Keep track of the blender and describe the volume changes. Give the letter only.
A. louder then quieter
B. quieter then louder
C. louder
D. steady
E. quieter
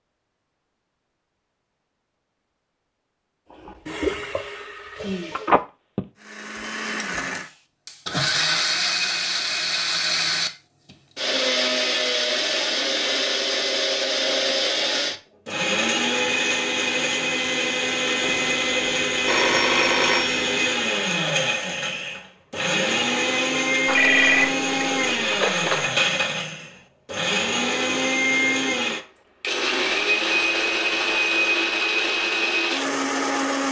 D.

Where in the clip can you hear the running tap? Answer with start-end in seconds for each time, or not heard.
3.6-5.7.